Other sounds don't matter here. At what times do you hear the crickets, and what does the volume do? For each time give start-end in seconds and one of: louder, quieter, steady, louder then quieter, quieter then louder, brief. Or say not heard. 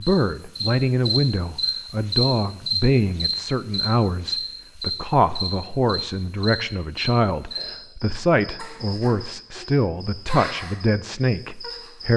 0.0-12.1 quieter.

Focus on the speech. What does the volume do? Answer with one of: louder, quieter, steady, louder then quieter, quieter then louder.
steady.